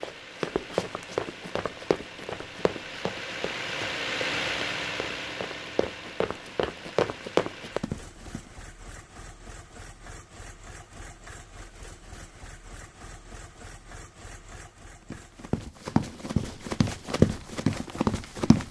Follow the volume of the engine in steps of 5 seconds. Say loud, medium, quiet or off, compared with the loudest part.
loud, medium, quiet, quiet.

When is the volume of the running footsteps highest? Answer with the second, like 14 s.
17 s.